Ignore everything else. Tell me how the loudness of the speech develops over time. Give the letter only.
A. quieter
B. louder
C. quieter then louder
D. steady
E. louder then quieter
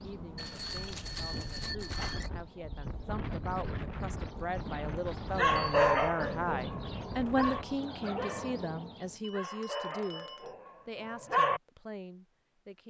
E.